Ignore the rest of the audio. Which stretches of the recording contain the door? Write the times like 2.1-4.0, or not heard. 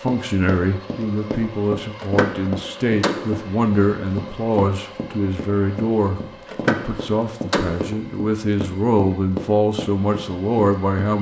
2.0-3.4, 6.5-7.9.